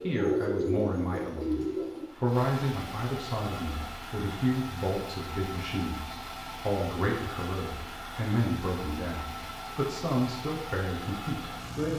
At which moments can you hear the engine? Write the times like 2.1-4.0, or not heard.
0.0-11.9.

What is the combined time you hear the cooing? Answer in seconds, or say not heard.
2 s.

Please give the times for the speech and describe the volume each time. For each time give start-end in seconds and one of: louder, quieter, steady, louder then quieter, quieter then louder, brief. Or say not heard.
0.0-11.9 steady.